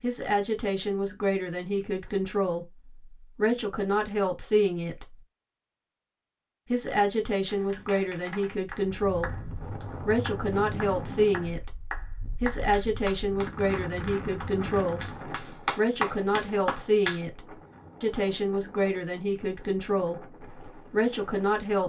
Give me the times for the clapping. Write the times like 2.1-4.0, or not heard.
7.5-17.2.